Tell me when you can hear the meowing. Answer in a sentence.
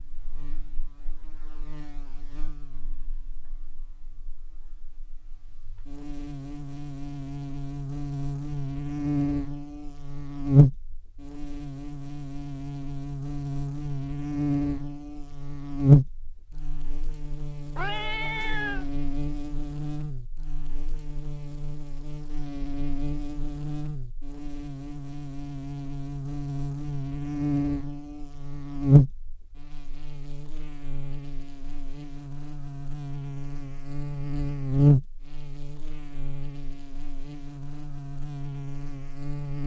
The meowing can be heard from 17.8 to 18.9 s.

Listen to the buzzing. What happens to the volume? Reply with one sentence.
The volume of the buzzing goes up.